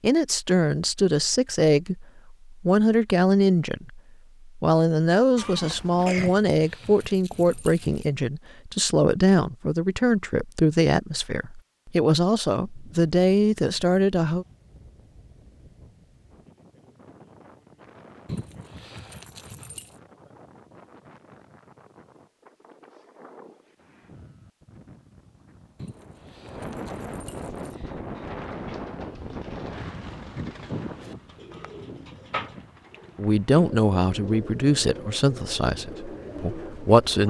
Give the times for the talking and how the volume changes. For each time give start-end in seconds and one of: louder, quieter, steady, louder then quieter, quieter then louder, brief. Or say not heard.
0.0-14.4 steady
33.1-37.2 quieter.